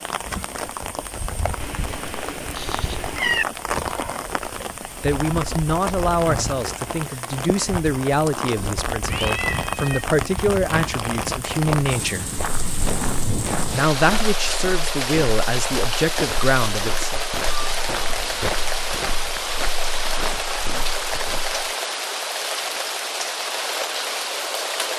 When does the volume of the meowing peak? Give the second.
3 s.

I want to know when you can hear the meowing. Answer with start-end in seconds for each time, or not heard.
1.6-3.5, 9.1-10.1, 17.4-19.4.